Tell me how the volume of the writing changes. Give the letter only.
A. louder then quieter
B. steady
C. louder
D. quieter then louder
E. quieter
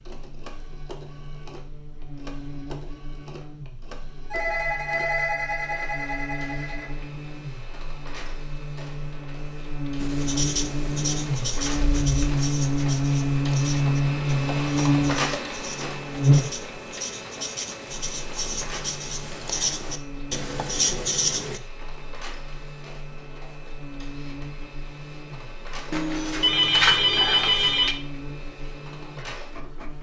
D.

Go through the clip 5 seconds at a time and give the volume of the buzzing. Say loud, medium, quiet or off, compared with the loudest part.
quiet, quiet, loud, loud, quiet, quiet.